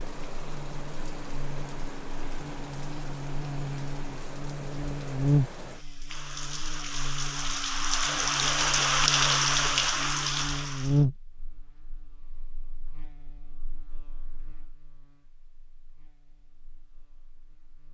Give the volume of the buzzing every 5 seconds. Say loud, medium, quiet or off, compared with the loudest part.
medium, loud, loud, quiet.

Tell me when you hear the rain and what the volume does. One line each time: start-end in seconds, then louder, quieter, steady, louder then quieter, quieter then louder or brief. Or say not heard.
0.0-11.1 louder.